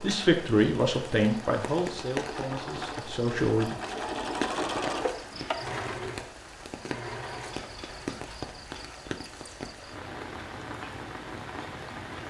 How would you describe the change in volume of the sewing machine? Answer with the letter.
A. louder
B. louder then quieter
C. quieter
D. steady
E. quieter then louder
B.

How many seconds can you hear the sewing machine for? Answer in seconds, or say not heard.
9 s.